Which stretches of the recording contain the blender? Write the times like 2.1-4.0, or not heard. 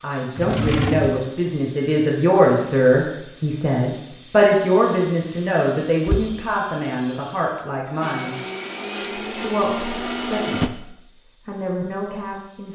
8.0-10.7.